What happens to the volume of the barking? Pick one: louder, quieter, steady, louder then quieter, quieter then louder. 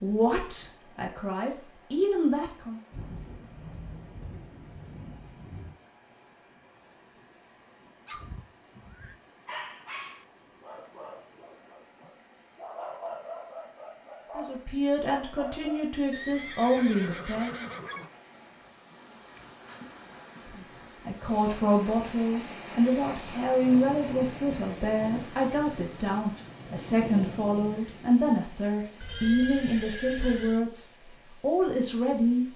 quieter then louder.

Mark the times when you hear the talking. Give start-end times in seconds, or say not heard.
0.0-2.8, 14.3-17.6, 20.4-32.5.